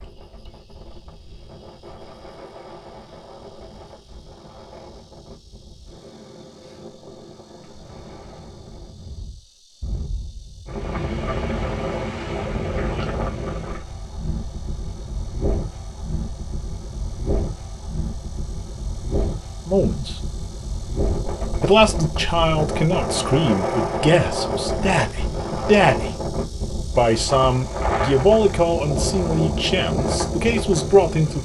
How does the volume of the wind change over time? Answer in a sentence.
The volume of the wind goes up.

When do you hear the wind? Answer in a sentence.
You can hear the wind from 0.0 to 31.3 s.